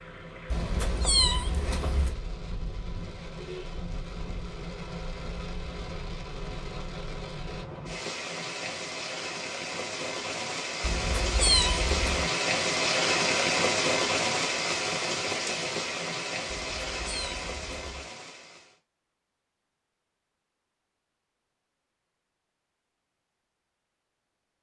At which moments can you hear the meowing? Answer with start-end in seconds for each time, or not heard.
0.5-2.1, 10.8-12.3, 16.6-18.1.